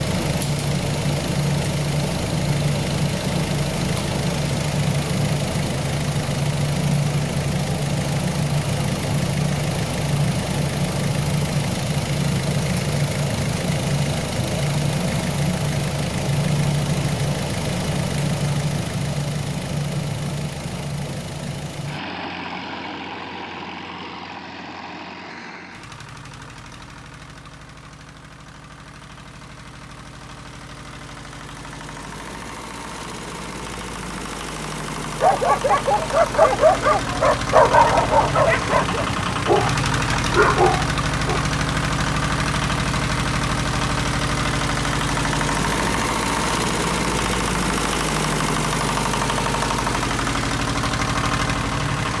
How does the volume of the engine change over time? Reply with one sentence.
The loudness of the engine goes down, then up.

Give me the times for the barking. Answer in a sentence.
The barking can be heard from 35.2 to 41.4 s.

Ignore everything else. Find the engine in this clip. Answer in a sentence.
The engine can be heard from 0.0 to 52.1 s.